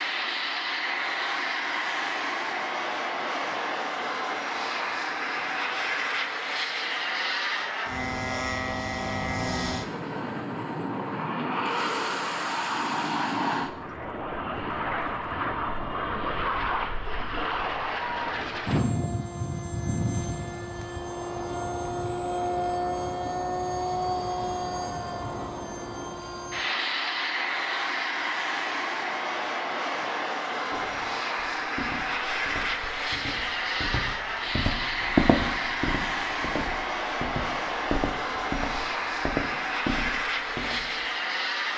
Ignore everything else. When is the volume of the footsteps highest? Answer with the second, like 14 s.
35 s.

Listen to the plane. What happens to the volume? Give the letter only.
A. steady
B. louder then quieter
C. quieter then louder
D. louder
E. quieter
A.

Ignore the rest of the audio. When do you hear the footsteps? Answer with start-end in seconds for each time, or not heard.
30.7-41.0.